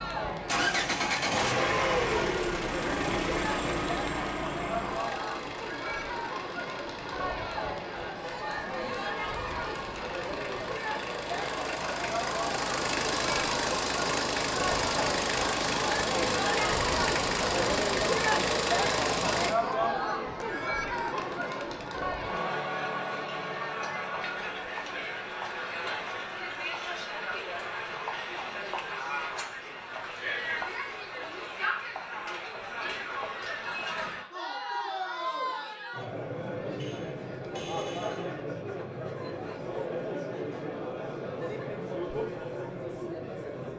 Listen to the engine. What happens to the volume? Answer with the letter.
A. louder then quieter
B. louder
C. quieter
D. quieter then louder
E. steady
D.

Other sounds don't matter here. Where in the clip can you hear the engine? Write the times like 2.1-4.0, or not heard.
0.0-19.6.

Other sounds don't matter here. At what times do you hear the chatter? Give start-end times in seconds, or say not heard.
0.0-43.7.